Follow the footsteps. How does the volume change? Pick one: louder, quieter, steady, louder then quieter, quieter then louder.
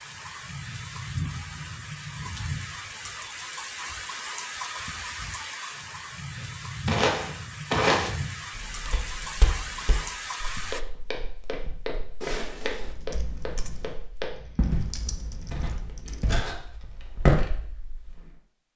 quieter then louder.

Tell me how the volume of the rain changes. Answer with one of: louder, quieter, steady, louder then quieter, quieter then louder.
steady.